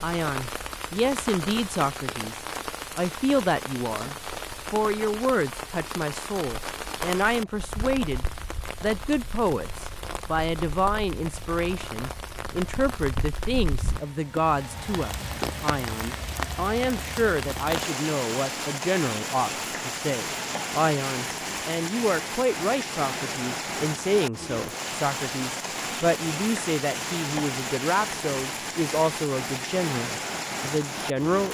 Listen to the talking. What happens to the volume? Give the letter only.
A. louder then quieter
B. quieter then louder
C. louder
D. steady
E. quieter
D.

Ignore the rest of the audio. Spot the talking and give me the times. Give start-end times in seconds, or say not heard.
0.0-31.5.